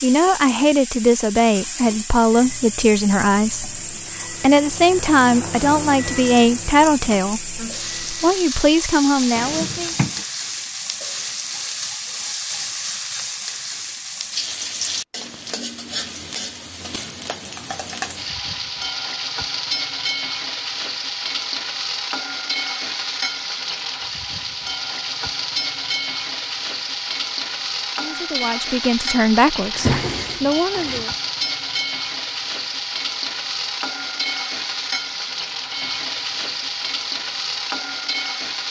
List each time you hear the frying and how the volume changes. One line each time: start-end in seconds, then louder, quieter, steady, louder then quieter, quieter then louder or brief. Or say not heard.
0.0-38.6 steady.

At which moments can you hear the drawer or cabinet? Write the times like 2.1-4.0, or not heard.
9.3-10.2, 29.7-31.1.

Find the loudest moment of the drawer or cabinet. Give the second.
30 s.